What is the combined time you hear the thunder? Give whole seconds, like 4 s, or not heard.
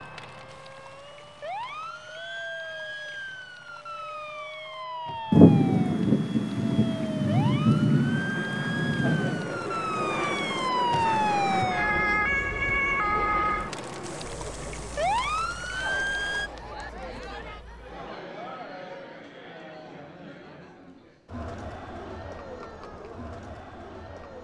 4 s.